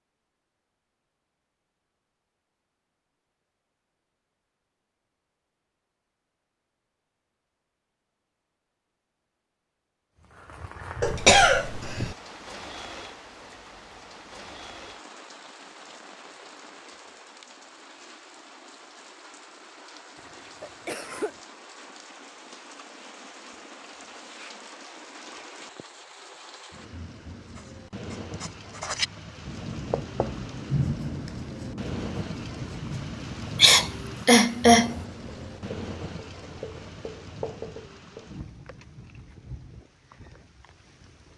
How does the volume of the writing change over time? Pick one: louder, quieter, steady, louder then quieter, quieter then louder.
quieter.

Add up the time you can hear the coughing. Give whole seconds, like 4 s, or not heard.
4 s.